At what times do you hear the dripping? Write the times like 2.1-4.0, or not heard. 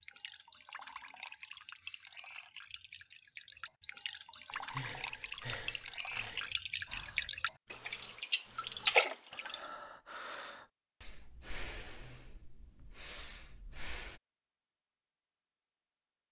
0.0-9.7.